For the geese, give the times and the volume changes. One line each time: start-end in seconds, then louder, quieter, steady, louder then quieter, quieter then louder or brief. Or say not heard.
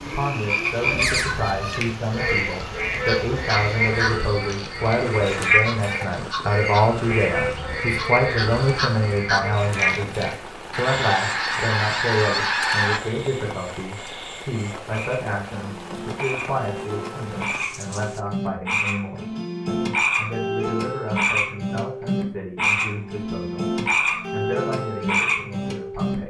2.9-13.0 louder.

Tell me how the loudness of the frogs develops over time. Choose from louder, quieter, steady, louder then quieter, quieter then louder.
quieter then louder.